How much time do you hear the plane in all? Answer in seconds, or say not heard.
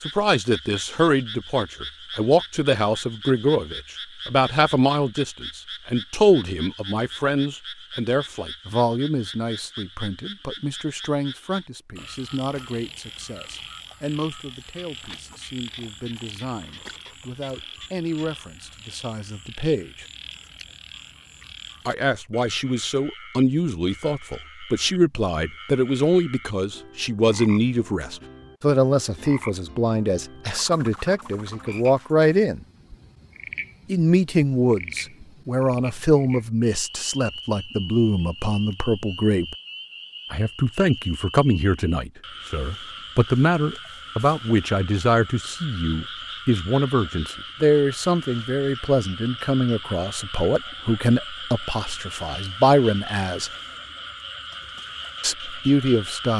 not heard.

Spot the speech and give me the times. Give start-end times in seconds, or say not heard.
0.1-20.1, 21.9-32.6, 33.9-39.5, 40.3-53.5, 55.2-56.3.